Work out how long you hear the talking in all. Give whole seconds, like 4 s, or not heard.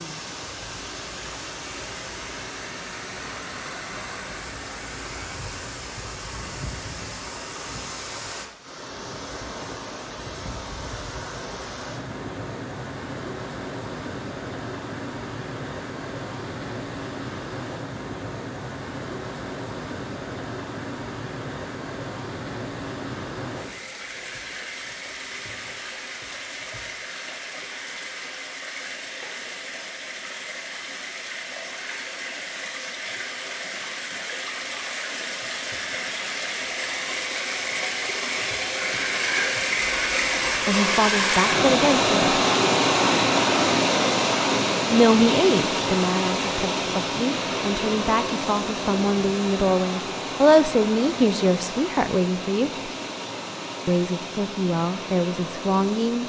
12 s.